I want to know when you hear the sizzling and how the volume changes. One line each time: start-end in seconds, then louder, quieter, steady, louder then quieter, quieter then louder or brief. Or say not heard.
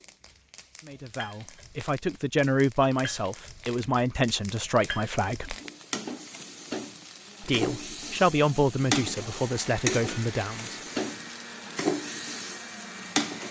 0.0-13.4 louder.